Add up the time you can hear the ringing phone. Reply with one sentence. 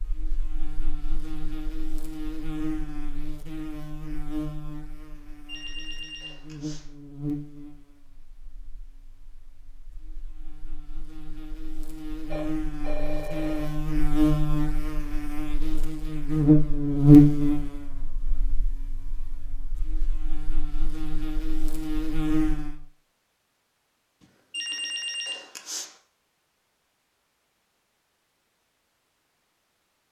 The ringing phone can be heard for 4 seconds in total.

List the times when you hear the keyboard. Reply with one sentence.
The keyboard can't be heard in this clip.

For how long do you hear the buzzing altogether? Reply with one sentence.
You can hear the buzzing for 23 seconds altogether.